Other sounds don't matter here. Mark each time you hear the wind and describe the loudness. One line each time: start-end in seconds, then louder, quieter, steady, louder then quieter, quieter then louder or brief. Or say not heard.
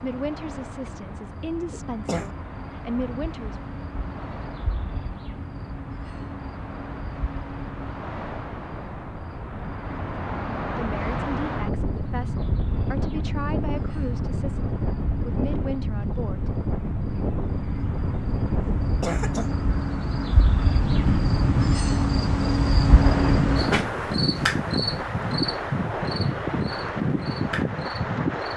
0.0-28.5 louder.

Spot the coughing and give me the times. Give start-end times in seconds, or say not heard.
1.7-2.3, 18.6-19.6.